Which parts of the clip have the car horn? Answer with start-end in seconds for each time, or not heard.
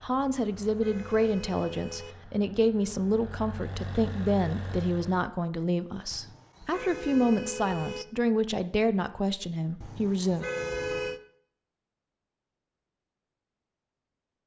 0.2-2.1, 6.1-8.1, 9.8-11.2.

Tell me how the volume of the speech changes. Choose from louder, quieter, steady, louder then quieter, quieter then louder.
steady.